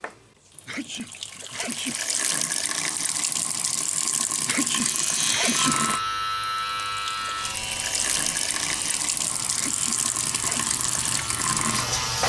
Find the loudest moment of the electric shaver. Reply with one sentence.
The volume of the electric shaver peaks at 6 seconds.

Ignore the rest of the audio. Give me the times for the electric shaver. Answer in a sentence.
You can hear the electric shaver from 4.8 to 12.2 s.